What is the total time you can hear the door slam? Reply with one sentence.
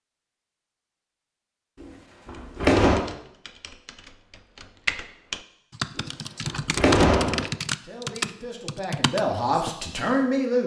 You can hear the door slam for 3 seconds altogether.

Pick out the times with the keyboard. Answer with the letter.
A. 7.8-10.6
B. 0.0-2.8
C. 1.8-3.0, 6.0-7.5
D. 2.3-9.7
D.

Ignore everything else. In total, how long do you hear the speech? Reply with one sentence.
The speech can be heard for 3 seconds in total.